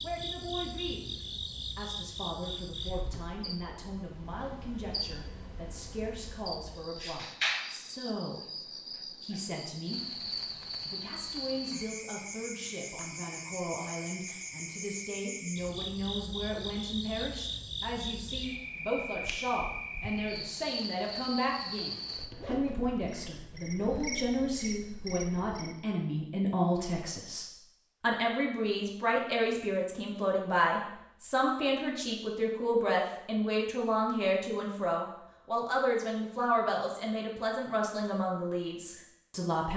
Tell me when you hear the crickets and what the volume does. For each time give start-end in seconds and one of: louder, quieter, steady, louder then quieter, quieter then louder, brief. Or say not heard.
0.0-25.8 steady.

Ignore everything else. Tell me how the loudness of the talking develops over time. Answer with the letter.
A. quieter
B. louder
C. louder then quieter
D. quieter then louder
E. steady
B.